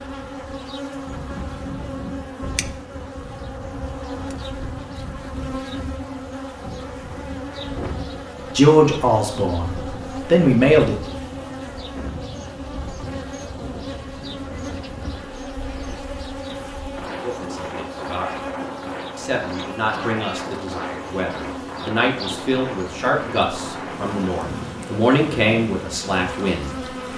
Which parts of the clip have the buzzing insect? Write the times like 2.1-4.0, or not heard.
0.0-27.1.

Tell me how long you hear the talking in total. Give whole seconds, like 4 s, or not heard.
12 s.